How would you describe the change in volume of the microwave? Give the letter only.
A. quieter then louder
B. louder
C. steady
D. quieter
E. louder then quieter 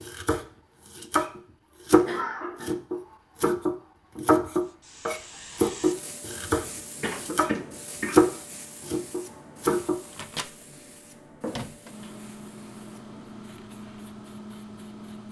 B.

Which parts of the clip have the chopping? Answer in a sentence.
The chopping can be heard from 0.0 to 10.0 s.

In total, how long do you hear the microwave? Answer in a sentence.
You can hear the microwave for 5 seconds altogether.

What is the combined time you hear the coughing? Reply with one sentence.
The coughing can be heard for 3 seconds in total.